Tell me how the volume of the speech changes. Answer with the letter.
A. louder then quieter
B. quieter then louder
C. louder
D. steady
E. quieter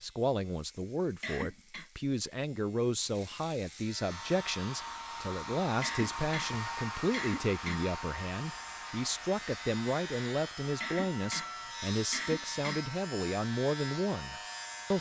D.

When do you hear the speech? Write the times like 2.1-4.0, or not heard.
0.0-14.9.